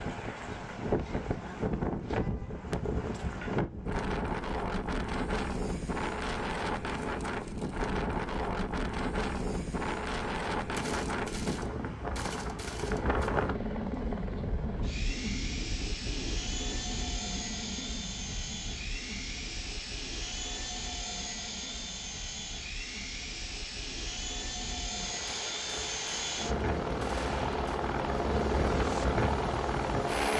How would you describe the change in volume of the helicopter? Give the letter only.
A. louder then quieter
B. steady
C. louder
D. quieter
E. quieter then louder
C.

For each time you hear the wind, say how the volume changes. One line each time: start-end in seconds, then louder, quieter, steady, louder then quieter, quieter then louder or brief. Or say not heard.
0.0-30.3 quieter then louder.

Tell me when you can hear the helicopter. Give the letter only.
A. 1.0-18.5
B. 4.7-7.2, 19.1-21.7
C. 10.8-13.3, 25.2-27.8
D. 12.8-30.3
D.